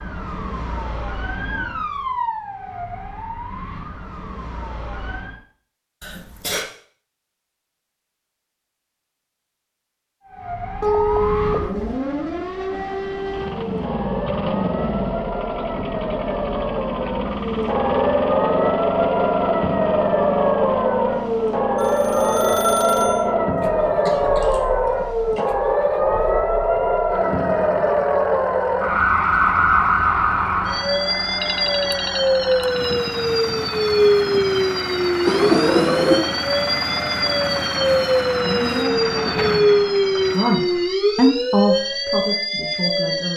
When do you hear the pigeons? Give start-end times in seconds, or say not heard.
not heard.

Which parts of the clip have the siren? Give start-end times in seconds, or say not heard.
0.0-5.4, 10.2-43.3.